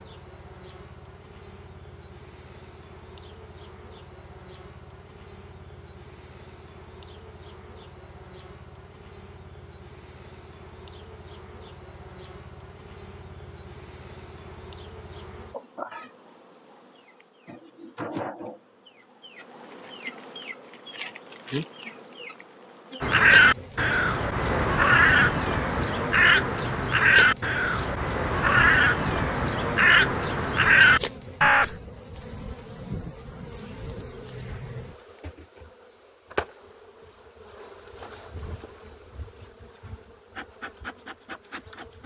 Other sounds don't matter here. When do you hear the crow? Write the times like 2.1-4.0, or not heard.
23.0-31.8.